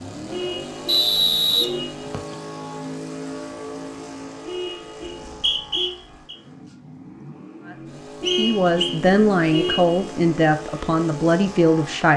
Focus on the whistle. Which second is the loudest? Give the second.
1 s.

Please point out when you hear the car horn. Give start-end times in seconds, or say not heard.
0.3-2.1, 4.5-5.9, 8.2-10.1.